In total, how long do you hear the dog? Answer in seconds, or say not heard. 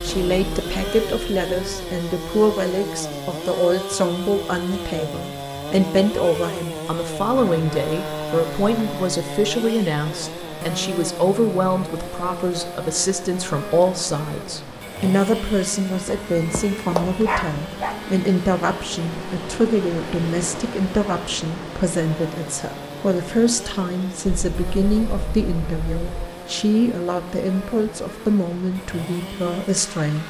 2 s.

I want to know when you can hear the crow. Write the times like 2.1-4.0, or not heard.
not heard.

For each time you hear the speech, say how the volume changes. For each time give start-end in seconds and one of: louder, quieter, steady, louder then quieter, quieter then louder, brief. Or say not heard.
0.0-30.2 steady.